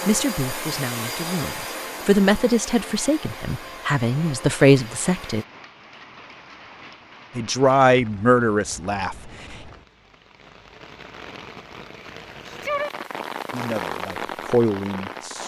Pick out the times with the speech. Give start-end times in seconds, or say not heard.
0.0-5.5, 7.3-9.6, 13.5-15.4.